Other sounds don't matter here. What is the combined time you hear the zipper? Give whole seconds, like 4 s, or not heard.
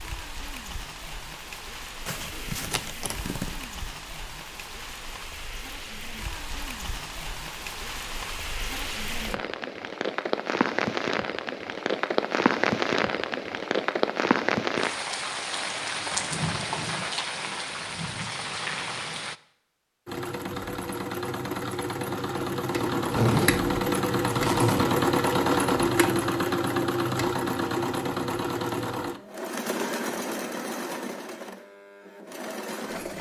3 s.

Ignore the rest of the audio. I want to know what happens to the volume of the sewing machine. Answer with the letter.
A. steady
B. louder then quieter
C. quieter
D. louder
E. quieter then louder
B.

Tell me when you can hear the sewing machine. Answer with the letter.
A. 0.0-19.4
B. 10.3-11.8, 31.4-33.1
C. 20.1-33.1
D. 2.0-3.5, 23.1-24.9
C.